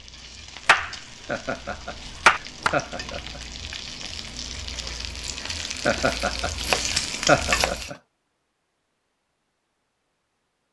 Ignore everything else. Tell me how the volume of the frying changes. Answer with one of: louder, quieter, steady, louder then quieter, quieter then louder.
louder.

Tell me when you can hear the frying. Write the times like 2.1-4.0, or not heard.
0.0-7.9.